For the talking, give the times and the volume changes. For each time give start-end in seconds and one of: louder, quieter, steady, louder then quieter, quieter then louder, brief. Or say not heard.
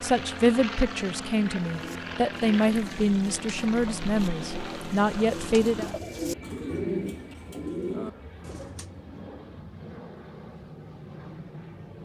0.0-5.9 steady.